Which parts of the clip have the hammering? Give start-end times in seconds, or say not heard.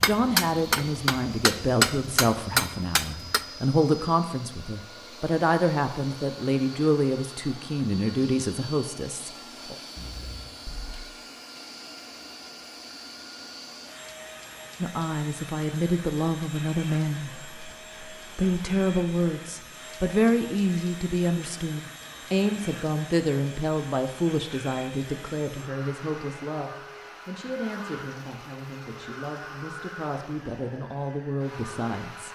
0.0-3.5.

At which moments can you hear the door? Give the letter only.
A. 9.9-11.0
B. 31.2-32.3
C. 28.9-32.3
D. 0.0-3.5
A.